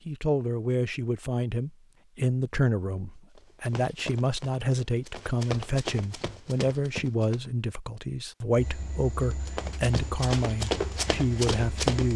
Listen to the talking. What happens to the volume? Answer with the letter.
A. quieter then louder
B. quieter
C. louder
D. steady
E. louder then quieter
D.